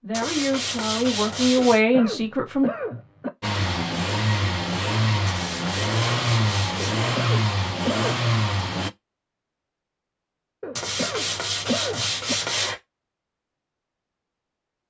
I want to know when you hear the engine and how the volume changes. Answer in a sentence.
You can hear the engine from 3.4 to 8.9 s, at a steady volume.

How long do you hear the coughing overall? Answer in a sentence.
You can hear the coughing for 5 seconds altogether.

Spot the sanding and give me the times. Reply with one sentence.
The sanding can be heard from 0.1 to 1.8 s, from 5.2 to 7.0 s and from 10.8 to 12.8 s.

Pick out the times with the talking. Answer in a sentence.
You can hear the talking from 0.0 to 2.6 s.